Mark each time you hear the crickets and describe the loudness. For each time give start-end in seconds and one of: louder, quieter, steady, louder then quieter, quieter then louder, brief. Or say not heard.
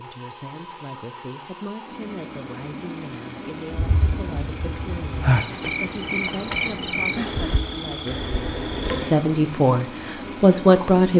3.7-11.0 quieter.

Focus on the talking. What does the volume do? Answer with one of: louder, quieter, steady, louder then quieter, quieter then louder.
louder.